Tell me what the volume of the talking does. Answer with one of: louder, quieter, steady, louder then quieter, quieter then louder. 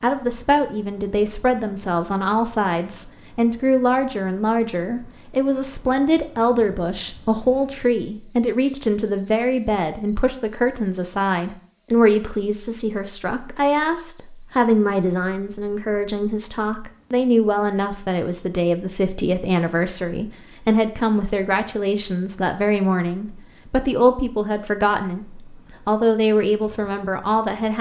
steady.